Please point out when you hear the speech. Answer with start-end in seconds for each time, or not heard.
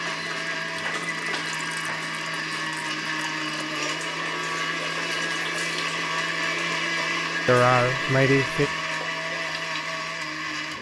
7.5-8.7.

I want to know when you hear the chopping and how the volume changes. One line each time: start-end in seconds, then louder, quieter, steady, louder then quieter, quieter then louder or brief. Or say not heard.
not heard.